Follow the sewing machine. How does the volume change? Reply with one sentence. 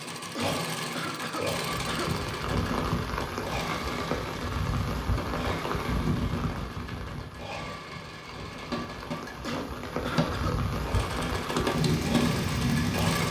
The loudness of the sewing machine goes down, then up.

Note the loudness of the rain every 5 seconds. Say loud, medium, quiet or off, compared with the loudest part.
loud, medium, loud.